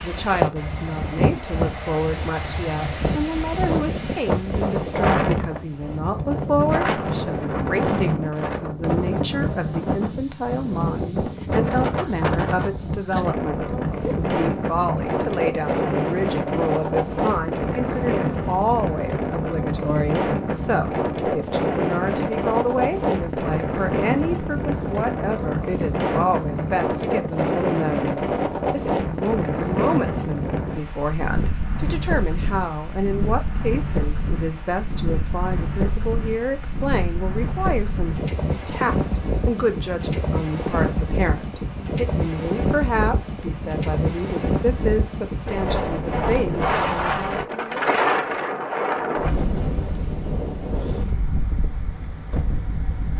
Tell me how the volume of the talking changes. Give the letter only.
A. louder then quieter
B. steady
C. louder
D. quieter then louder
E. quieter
B.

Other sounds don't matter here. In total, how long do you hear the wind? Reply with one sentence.
You can hear the wind for 53 seconds altogether.